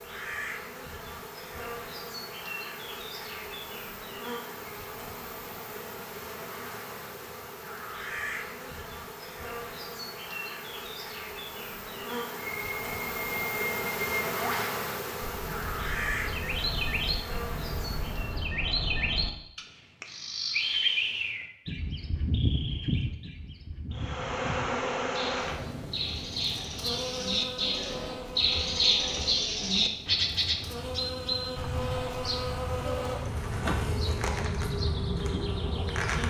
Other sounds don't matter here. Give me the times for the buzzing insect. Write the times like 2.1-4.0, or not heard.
0.0-18.5, 23.9-36.2.